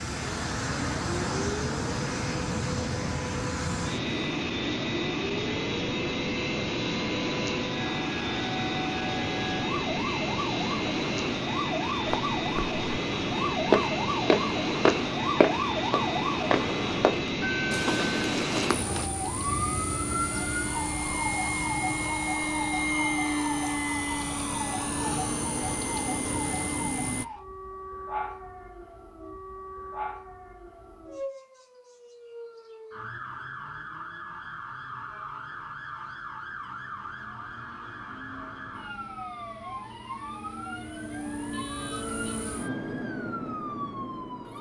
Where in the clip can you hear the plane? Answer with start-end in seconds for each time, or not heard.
0.0-27.2, 38.7-44.5.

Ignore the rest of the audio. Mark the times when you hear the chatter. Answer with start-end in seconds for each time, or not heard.
not heard.